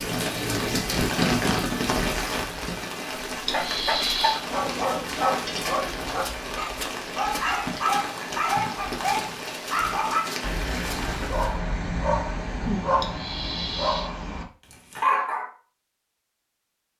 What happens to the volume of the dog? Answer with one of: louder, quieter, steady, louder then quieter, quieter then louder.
steady.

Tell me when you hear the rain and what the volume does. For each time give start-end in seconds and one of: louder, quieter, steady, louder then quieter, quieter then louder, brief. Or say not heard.
0.0-11.6 quieter.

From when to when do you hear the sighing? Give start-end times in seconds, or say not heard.
3.5-4.4, 13.0-14.1.